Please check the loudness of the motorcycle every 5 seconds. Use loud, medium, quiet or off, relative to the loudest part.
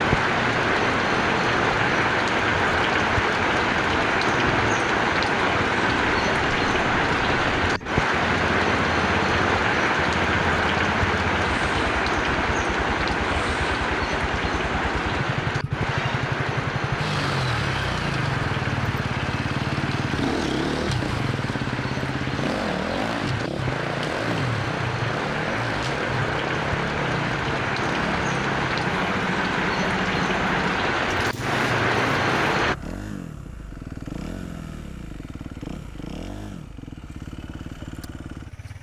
medium, medium, medium, loud, loud, loud, medium, medium.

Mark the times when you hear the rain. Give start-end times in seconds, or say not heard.
0.0-32.8.